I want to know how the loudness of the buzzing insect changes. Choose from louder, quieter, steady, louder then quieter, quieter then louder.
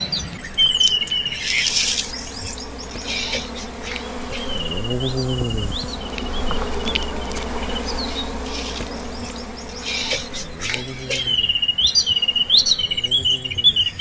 louder then quieter.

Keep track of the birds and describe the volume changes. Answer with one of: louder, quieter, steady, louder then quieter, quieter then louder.
quieter then louder.